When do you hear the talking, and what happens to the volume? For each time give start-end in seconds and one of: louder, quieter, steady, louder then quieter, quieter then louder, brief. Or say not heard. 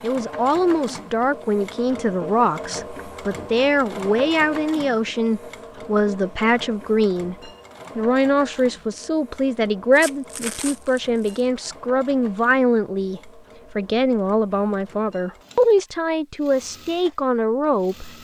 0.0-18.2 steady.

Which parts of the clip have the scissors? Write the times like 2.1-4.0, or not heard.
not heard.